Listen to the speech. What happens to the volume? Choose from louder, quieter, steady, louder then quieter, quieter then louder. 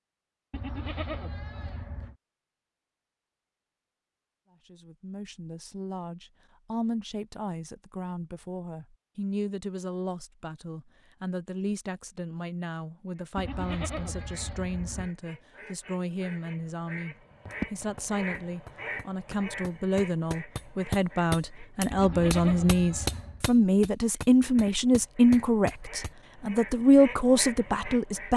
louder.